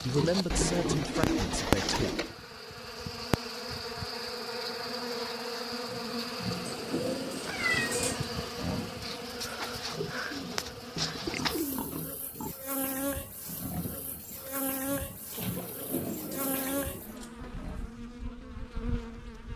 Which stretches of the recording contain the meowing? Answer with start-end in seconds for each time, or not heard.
7.5-8.2.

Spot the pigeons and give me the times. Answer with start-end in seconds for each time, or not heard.
0.5-2.4, 6.7-8.2, 10.3-11.9, 15.3-16.9.